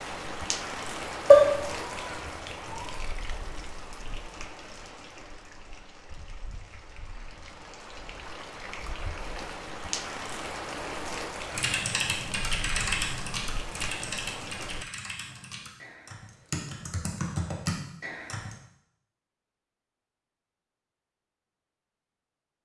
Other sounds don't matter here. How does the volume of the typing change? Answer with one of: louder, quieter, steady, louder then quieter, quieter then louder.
quieter then louder.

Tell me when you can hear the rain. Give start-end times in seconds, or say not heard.
0.0-14.8.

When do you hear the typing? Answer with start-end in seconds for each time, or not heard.
11.5-18.6.